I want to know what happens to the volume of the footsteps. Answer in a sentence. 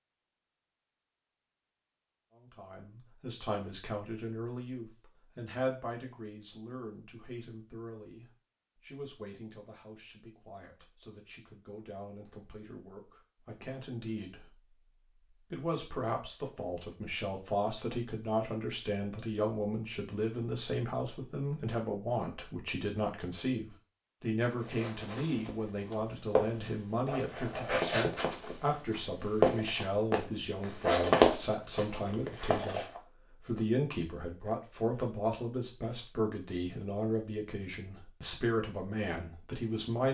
The loudness of the footsteps goes up.